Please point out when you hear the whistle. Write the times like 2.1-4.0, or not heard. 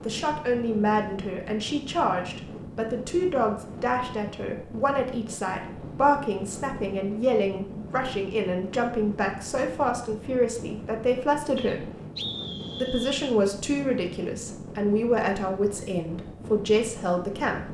11.6-13.2.